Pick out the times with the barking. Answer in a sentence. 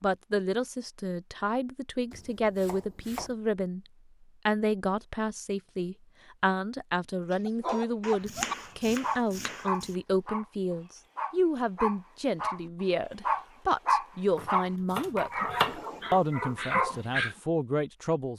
You can hear the barking from 7.5 to 17.4 s.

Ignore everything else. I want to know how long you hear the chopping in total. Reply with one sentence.
The chopping can be heard for 5 seconds in total.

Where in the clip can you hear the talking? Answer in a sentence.
You can hear the talking from 0.0 to 3.8 s and from 4.5 to 18.3 s.